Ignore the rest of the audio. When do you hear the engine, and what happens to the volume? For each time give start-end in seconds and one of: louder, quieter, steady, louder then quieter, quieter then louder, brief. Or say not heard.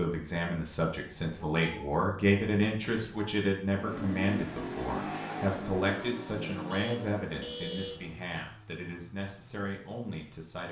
3.7-10.6 quieter.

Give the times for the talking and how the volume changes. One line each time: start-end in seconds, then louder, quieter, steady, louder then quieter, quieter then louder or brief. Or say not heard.
0.0-10.6 quieter.